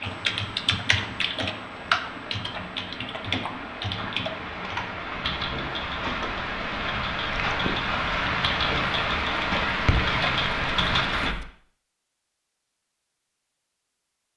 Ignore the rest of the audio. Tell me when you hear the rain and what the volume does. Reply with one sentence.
You can hear the rain from 0.0 to 11.3 s, getting louder.